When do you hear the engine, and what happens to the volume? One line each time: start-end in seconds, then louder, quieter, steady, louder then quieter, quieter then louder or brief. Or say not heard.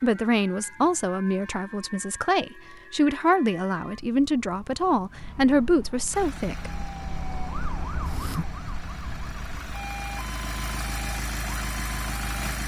6.0-12.6 louder.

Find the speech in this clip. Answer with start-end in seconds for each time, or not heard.
0.0-6.7.